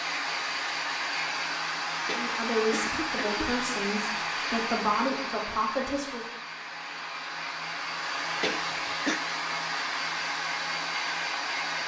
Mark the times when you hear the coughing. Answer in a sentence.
You can hear the coughing from 2.0 to 3.5 s and from 8.4 to 9.2 s.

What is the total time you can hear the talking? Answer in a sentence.
The talking can be heard for 4 seconds in total.